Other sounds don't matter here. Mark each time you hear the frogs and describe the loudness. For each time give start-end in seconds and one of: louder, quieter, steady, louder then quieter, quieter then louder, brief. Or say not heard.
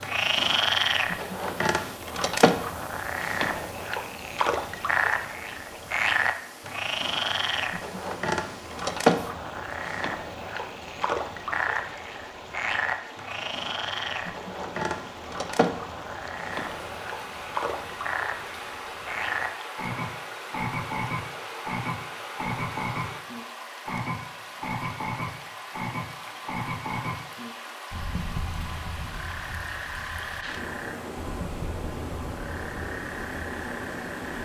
0.0-34.4 quieter.